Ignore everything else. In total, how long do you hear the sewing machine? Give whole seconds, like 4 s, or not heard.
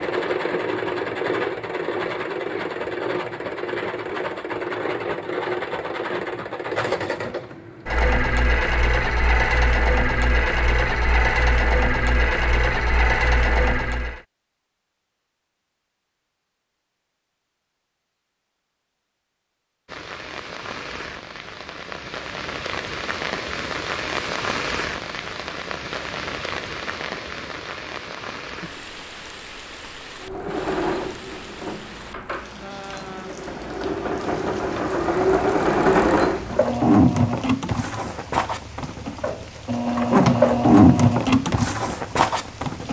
27 s.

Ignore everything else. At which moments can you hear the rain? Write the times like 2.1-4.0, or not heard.
19.9-42.8.